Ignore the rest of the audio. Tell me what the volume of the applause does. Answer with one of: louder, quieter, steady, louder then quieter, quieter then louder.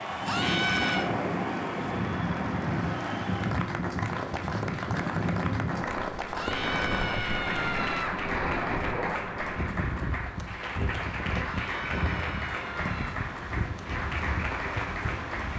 steady.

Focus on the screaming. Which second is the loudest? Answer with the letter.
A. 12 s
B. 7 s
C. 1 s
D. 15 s
C.